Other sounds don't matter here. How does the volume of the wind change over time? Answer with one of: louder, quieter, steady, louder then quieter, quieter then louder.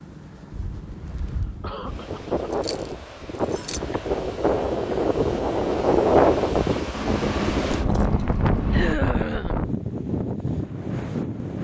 louder then quieter.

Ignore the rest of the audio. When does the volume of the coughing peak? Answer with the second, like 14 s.
9 s.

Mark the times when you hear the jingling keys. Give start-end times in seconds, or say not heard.
2.5-3.8, 6.9-8.9.